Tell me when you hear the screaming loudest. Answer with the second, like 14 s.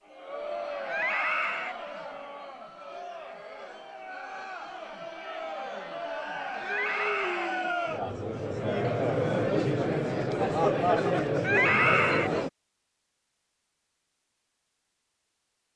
12 s.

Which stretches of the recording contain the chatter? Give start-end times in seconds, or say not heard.
0.1-12.5.